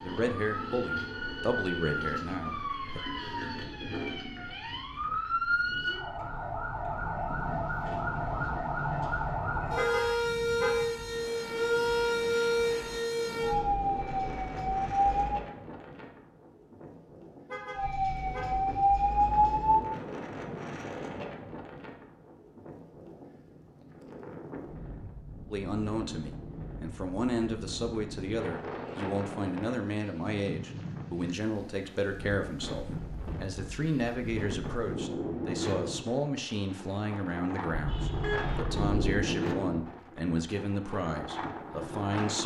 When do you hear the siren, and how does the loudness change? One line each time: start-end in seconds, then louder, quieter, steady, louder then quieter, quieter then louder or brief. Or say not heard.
0.0-15.3 louder
17.8-19.9 brief.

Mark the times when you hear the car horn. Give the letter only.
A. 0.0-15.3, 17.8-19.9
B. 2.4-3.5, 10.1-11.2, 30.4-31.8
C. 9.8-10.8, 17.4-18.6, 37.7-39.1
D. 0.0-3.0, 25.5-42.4
C.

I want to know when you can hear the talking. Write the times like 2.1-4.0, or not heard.
0.0-3.0, 25.5-42.4.